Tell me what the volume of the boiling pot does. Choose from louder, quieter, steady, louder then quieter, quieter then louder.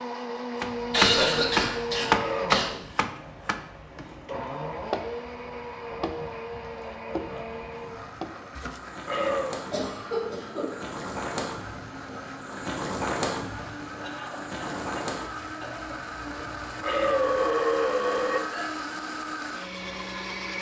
louder then quieter.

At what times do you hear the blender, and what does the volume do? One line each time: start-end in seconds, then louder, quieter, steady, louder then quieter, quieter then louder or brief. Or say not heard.
0.0-20.5 quieter then louder.